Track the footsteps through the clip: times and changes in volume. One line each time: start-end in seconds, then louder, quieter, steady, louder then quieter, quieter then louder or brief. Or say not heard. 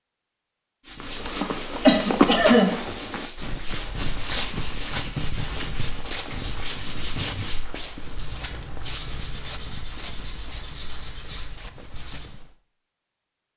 1.0-12.6 quieter.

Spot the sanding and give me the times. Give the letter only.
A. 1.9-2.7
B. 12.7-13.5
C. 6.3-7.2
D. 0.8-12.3
D.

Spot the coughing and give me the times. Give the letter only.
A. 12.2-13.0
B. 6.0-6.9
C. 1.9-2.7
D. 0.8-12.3
C.